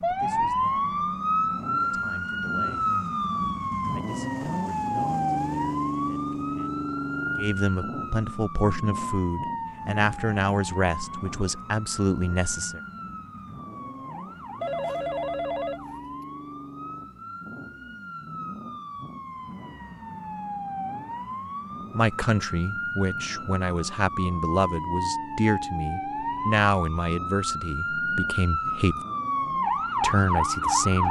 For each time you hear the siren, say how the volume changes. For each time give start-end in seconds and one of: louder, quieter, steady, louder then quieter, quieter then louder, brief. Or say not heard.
0.0-31.0 quieter then louder.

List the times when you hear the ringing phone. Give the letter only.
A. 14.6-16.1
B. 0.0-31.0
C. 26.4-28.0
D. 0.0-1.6
A.